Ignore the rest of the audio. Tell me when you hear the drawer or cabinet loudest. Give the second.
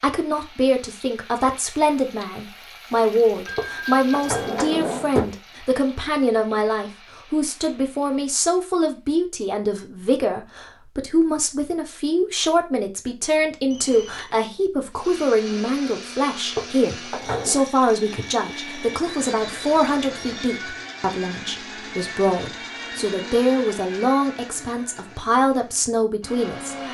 5 s.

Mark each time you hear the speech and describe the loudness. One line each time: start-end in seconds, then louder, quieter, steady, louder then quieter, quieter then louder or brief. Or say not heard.
0.0-26.8 steady.